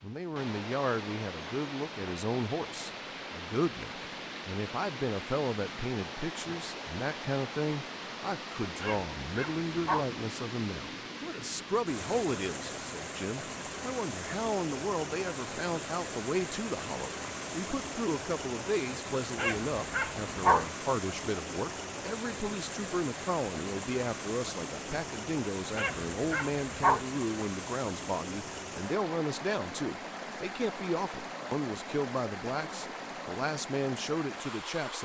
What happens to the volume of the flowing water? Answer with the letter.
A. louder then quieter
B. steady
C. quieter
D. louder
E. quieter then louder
B.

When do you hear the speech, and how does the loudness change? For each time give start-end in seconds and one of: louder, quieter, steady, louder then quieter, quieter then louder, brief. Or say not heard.
0.0-35.0 steady.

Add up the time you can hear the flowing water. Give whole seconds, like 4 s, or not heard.
35 s.